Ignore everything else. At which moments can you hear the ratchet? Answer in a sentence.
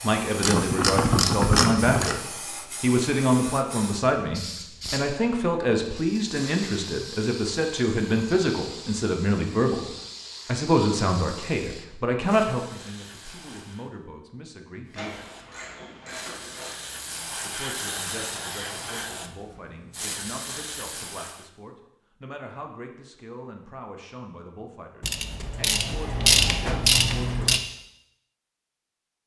You can hear the ratchet from 0.4 to 2.1 s, from 14.9 to 16.8 s and from 25.0 to 27.6 s.